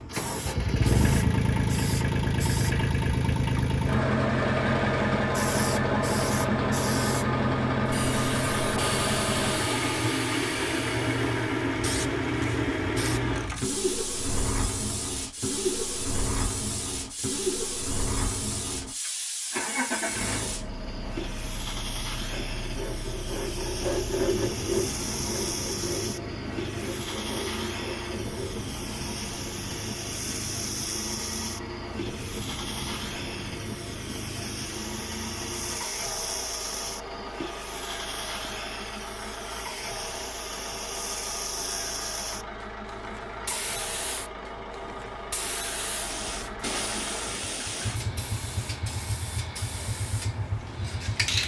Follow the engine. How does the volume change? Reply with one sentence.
The loudness of the engine goes down.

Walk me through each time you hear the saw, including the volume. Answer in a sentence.
The saw can be heard from 22.3 to 28.7 s, getting louder then quieter.